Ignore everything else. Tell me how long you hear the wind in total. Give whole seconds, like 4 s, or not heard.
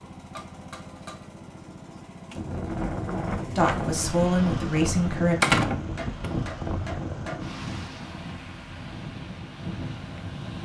8 s.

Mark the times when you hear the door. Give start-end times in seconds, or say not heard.
5.4-6.3.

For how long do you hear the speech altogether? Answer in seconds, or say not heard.
2 s.